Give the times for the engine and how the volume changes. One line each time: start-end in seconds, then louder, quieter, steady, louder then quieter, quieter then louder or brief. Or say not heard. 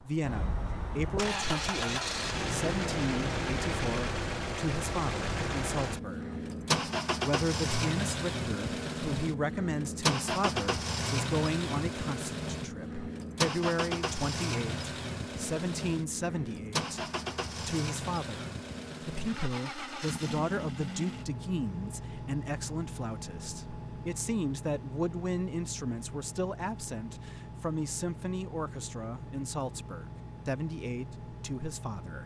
0.0-32.2 quieter.